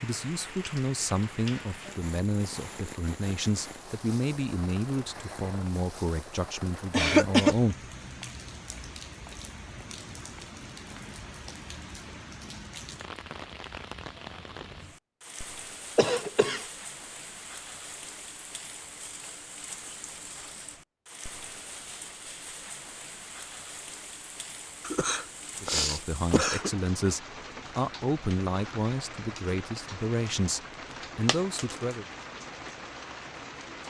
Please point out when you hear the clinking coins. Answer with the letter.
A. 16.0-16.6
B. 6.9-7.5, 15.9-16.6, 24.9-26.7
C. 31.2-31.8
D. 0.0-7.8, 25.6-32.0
C.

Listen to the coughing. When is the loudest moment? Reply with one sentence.
The loudest moment of the coughing is at 7 seconds.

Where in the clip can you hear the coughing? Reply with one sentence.
You can hear the coughing from 6.9 to 7.5 s, from 15.9 to 16.6 s and from 24.9 to 26.7 s.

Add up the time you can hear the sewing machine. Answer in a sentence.
You can't hear the sewing machine here.